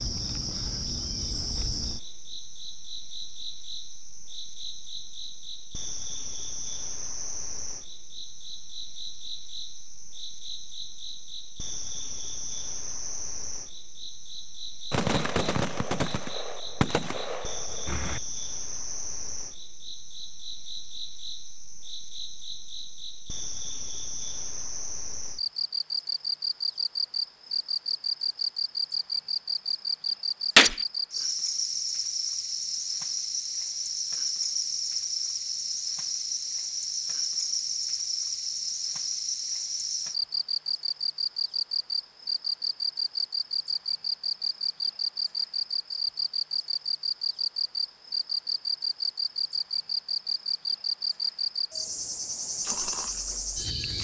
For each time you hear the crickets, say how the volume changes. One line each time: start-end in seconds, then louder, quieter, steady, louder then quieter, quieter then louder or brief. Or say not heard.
0.0-53.9 louder.